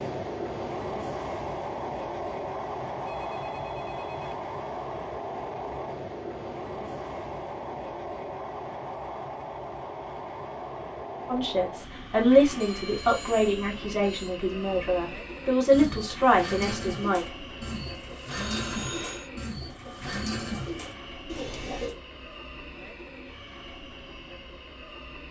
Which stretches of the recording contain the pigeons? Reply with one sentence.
The pigeons can be heard from 15.7 to 21.9 s.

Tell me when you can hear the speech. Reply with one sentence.
You can hear the speech from 11.3 to 17.2 s.